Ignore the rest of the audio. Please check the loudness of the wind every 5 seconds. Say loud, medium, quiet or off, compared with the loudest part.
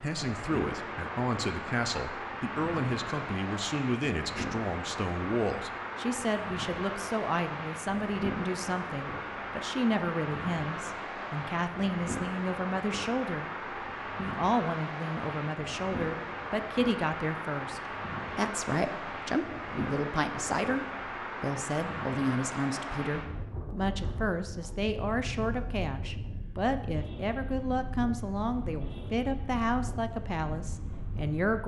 loud, loud, loud, loud, loud, medium, medium.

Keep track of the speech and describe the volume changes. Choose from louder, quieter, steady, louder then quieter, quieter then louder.
steady.